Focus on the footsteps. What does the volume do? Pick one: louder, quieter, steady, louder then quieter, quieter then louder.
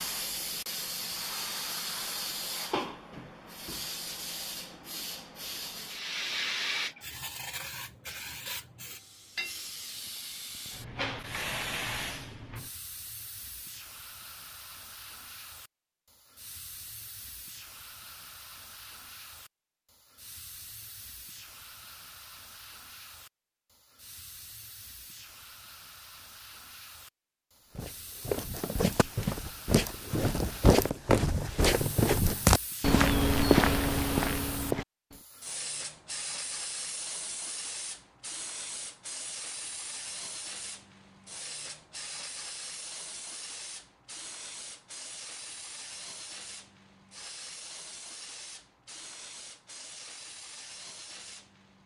louder.